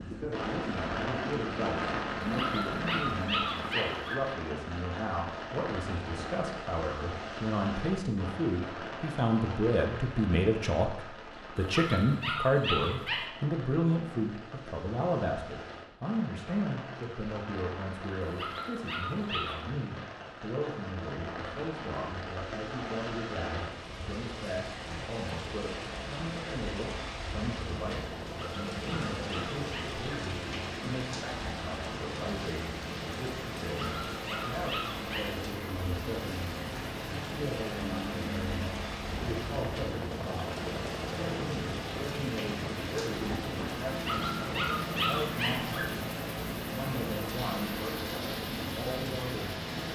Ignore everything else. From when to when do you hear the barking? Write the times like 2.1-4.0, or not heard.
2.2-4.2, 11.6-13.2, 18.2-19.6, 28.4-30.0, 33.8-35.3, 43.9-45.9.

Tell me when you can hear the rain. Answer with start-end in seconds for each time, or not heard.
0.0-49.8.